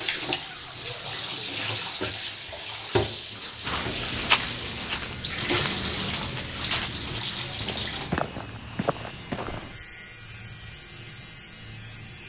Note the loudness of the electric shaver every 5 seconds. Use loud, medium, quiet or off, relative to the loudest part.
medium, loud, loud.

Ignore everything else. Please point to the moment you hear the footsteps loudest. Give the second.
4 s.